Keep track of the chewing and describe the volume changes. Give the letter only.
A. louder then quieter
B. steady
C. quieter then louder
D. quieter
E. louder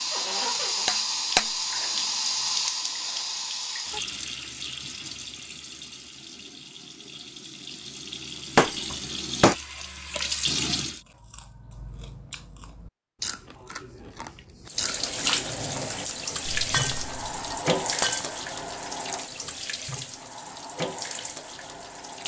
A.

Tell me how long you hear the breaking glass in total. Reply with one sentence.
The breaking glass can be heard for 3 seconds in total.